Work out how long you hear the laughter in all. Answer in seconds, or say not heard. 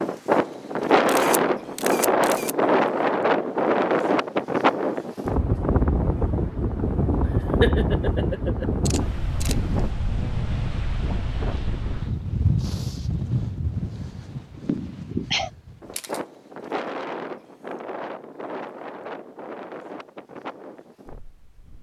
2 s.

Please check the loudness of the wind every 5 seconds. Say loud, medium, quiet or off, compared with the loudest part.
loud, medium, medium, quiet, quiet.